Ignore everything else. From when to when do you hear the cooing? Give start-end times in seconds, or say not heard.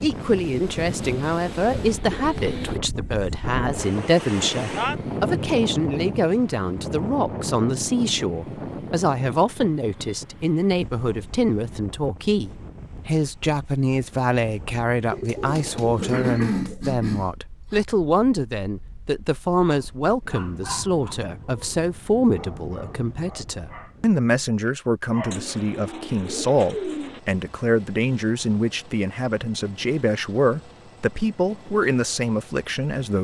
0.8-2.8, 15.1-16.8, 25.3-27.2.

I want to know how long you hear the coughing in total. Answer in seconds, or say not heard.
2 s.